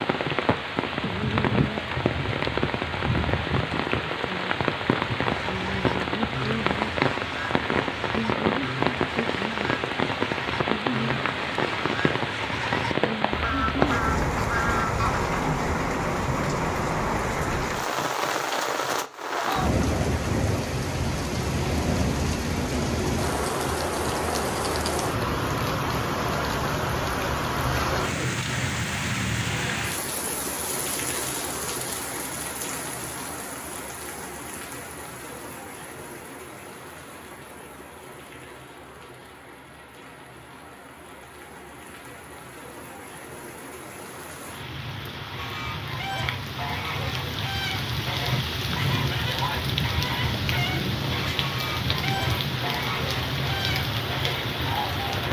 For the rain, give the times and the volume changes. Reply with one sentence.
The rain can be heard from 0.0 to 55.2 s, getting quieter then louder.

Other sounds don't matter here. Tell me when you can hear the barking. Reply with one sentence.
You can't hear the barking here.